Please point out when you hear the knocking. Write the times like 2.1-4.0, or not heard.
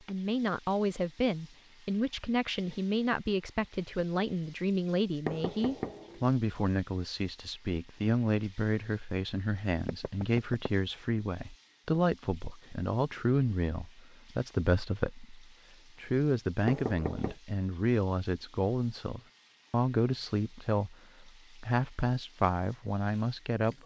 5.2-6.2, 9.8-10.7, 16.6-17.4.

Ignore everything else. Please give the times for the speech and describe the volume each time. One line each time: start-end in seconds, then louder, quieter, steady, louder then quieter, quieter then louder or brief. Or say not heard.
0.1-23.8 steady.